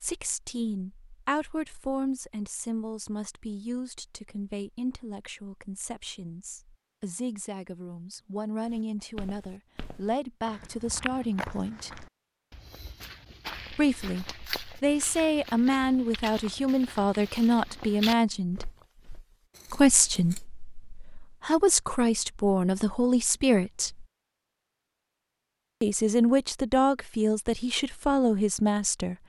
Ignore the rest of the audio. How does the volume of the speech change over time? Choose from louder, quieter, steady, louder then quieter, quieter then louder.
louder.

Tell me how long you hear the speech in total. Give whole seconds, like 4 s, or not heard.
25 s.